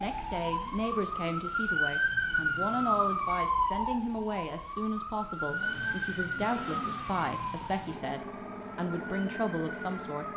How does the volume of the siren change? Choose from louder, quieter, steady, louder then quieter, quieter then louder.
quieter.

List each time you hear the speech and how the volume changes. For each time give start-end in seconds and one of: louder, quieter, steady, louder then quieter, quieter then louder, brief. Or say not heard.
0.0-10.2 steady.